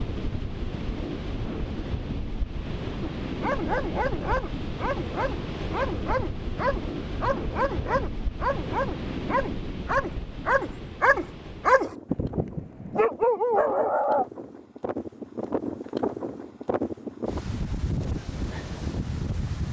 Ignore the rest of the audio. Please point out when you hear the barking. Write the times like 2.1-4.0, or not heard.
3.0-14.2.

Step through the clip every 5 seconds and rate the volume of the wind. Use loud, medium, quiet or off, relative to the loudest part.
loud, loud, medium, loud.